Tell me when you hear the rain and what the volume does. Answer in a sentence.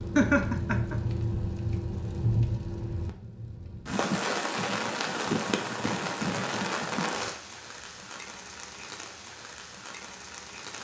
The rain can be heard from 0.0 to 10.7 s, getting quieter.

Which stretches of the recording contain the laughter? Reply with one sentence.
You can hear the laughter from 0.1 to 0.9 s.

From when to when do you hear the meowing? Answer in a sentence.
The meowing can't be heard in this clip.